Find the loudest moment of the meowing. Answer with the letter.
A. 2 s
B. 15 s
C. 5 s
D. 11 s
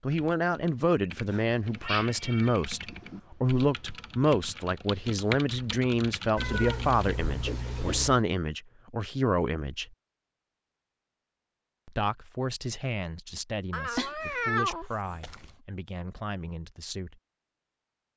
B.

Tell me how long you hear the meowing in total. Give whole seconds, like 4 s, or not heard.
6 s.